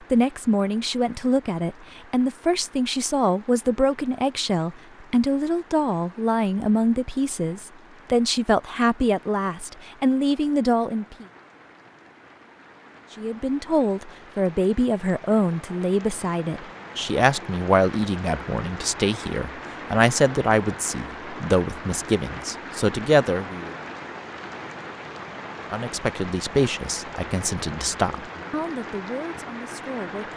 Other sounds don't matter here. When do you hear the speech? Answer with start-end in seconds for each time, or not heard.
0.1-11.2, 13.2-23.7, 25.7-30.3.